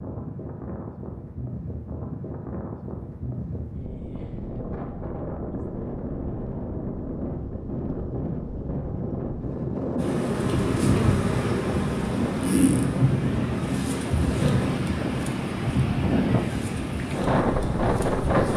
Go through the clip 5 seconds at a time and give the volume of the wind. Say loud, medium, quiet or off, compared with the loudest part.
medium, medium, loud, loud.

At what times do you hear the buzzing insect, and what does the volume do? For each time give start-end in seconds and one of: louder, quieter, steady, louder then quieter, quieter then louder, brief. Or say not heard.
9.9-18.5 quieter.